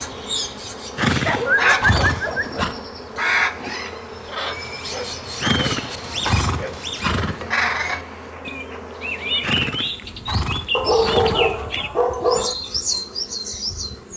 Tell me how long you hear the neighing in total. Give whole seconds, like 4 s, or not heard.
6 s.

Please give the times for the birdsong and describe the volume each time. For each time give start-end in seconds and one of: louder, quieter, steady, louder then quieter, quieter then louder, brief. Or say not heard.
0.0-14.1 steady.